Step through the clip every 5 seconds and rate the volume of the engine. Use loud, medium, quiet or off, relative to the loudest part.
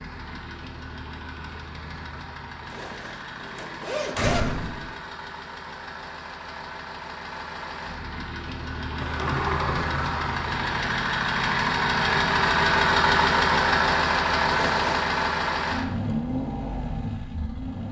quiet, quiet, loud, medium.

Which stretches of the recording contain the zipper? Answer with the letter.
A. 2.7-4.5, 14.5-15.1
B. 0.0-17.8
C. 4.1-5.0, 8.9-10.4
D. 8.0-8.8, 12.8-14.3
A.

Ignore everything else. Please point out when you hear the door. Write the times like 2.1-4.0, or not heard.
4.1-5.0, 8.9-10.4.